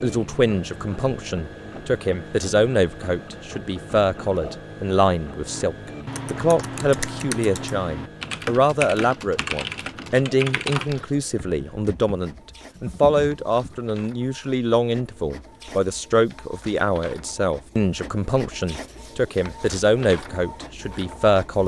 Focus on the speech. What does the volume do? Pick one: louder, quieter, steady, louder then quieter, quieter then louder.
steady.